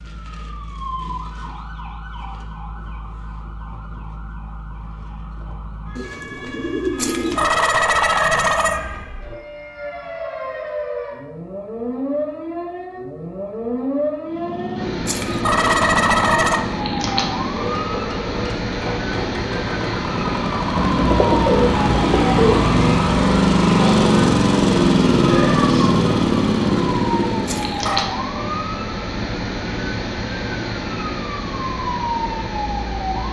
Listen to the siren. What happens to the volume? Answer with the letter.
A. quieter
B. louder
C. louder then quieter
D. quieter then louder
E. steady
B.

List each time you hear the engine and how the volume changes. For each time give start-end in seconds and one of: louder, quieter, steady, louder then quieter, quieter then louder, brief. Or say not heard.
14.2-27.8 louder.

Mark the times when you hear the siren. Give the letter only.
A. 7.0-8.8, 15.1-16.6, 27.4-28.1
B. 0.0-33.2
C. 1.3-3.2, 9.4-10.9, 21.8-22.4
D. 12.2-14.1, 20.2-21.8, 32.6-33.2
B.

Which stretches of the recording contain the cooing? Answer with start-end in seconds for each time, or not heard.
6.0-7.5, 20.8-22.6.